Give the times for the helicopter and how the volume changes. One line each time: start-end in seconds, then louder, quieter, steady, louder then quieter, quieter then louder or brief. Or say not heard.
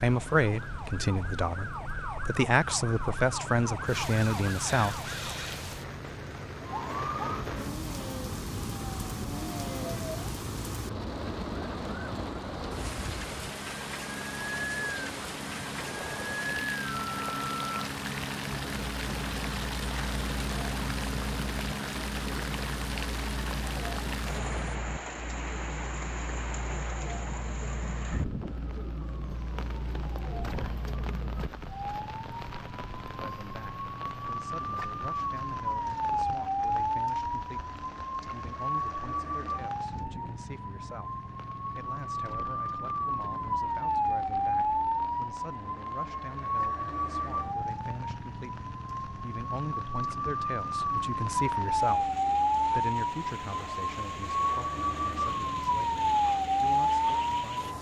0.1-24.8 louder.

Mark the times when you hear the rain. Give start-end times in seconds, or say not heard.
0.0-57.7.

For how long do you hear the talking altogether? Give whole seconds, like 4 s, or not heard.
30 s.